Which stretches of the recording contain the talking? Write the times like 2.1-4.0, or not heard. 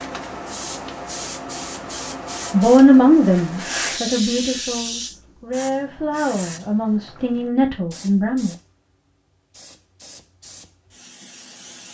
2.5-8.6.